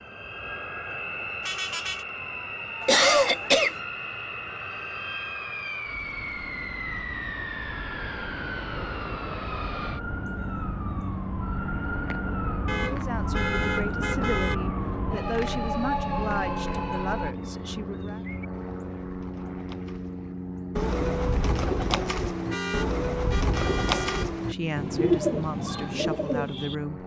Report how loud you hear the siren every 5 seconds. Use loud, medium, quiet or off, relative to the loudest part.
quiet, medium, loud, loud, off, off.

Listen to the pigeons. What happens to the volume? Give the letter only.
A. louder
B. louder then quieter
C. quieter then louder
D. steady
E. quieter
A.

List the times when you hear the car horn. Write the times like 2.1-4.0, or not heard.
1.4-2.0, 12.7-14.6, 22.5-24.3.